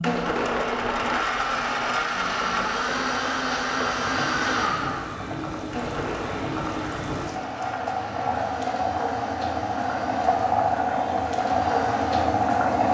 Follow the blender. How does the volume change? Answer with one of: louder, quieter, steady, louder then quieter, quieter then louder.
quieter.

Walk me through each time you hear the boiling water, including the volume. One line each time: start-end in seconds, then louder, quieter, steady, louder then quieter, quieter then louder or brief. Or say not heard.
0.0-12.8 louder.